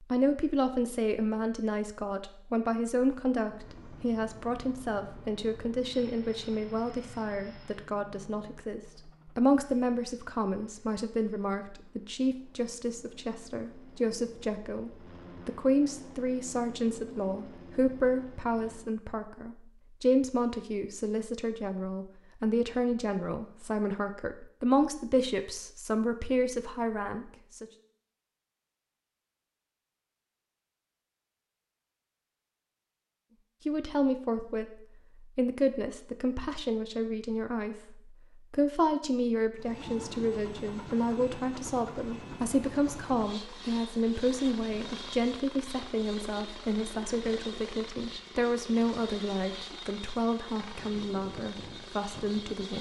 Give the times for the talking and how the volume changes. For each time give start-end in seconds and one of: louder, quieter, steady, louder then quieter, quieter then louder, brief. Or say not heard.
0.0-27.6 steady
33.6-52.7 steady.